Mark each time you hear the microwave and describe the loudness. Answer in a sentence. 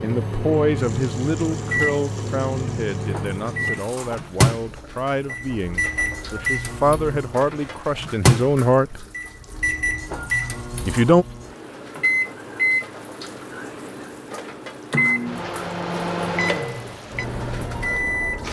The microwave can be heard from 0.0 to 18.4 s, at a steady volume.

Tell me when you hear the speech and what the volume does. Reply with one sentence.
You can hear the speech from 0.0 to 9.1 s, getting quieter then louder; and briefly from 10.8 to 11.2 s.